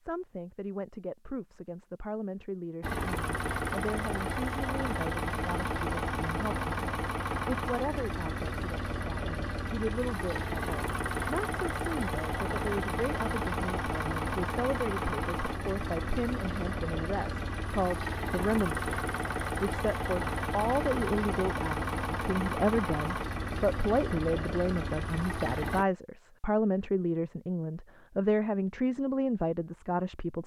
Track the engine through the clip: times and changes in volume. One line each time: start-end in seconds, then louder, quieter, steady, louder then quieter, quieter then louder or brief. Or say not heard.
2.8-25.9 steady.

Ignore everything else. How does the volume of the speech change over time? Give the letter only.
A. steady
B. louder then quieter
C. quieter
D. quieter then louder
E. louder
E.